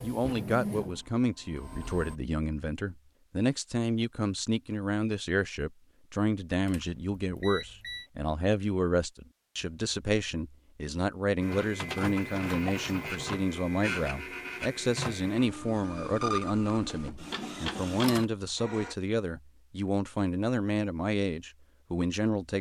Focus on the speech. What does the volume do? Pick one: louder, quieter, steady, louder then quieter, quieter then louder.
steady.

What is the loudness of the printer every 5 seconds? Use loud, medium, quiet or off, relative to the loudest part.
loud, off, loud, loud, off.